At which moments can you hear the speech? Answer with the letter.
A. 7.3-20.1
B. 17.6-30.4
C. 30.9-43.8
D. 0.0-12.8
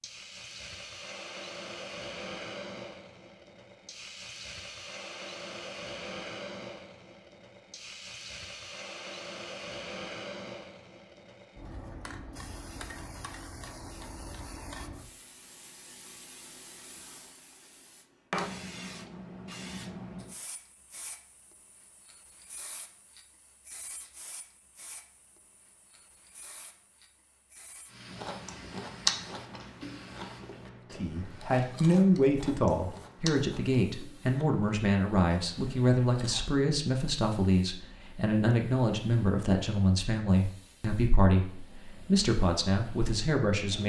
C.